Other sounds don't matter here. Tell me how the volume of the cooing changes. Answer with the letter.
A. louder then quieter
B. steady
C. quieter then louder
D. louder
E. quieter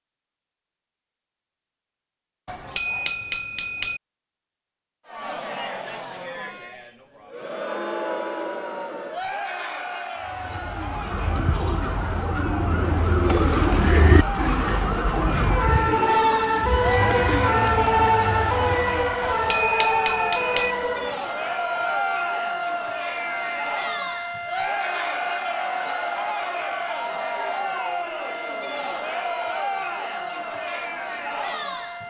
A.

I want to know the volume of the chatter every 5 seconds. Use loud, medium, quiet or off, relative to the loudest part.
off, loud, medium, loud, loud, loud, loud.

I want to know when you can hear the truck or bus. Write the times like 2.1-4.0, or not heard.
not heard.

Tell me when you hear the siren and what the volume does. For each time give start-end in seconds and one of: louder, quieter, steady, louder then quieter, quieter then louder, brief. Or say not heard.
10.7-32.0 louder then quieter.